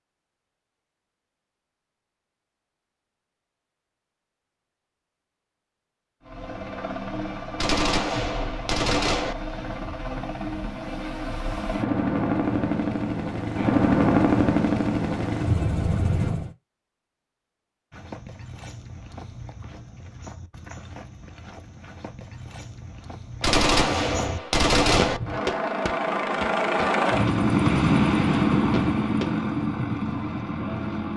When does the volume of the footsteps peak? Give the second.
25 s.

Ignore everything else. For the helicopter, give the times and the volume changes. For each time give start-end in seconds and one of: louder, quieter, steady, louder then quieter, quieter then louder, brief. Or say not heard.
6.2-16.6 louder
24.9-31.1 louder then quieter.